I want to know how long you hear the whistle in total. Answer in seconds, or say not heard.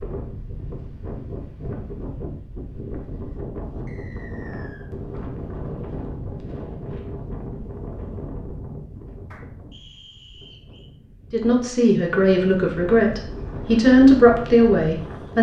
2 s.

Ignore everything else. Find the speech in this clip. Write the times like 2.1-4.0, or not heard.
11.3-15.3.